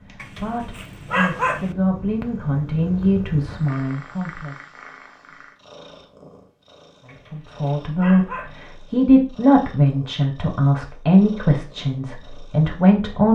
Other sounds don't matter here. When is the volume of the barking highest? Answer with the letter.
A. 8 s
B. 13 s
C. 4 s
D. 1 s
D.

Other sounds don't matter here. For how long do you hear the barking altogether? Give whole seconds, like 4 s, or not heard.
3 s.